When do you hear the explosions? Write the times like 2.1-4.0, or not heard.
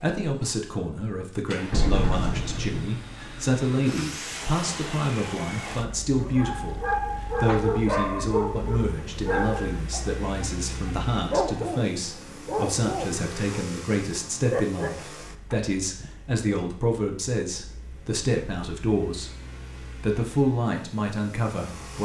1.7-2.9.